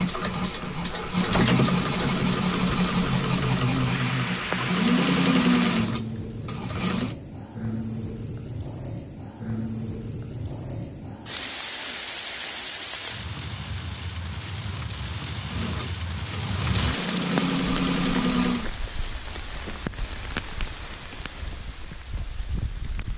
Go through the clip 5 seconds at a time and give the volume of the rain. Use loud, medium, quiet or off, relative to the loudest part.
loud, loud, loud, loud, medium.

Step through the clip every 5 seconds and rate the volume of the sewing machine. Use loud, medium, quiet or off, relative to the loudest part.
loud, loud, off, loud, off.